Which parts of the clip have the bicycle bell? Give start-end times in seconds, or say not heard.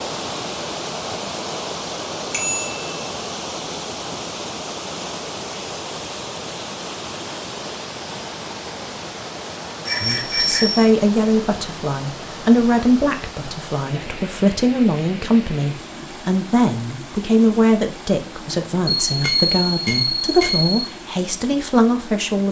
2.3-2.8, 9.8-10.8, 19.1-20.8.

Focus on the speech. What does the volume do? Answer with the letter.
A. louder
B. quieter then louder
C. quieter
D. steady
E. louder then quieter
D.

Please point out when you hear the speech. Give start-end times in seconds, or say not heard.
10.0-22.4.